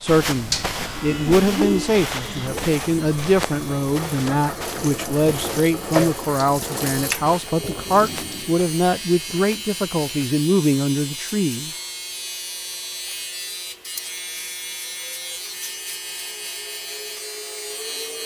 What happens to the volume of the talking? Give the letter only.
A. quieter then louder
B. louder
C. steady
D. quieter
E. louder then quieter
C.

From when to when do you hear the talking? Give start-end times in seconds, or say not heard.
0.0-11.7.